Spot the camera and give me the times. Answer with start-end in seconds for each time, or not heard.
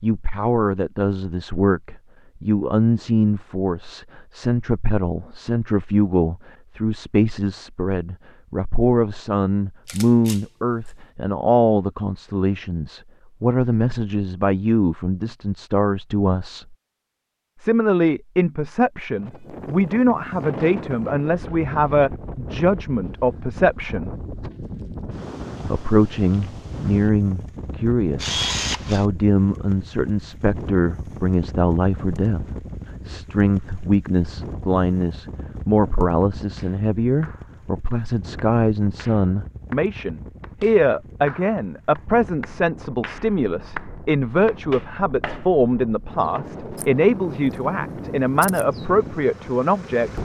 9.8-10.9, 28.1-29.1, 46.8-48.6.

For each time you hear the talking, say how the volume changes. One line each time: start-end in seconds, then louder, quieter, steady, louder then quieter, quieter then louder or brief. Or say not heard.
0.0-16.8 steady
17.6-24.1 steady
25.6-50.2 steady.